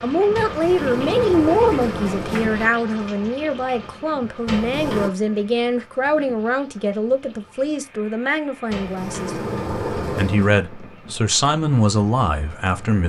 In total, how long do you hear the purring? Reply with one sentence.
You can't hear the purring here.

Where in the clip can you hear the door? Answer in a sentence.
You can hear the door from 0.3 to 2.7 s, from 4.5 to 5.1 s and from 8.7 to 10.6 s.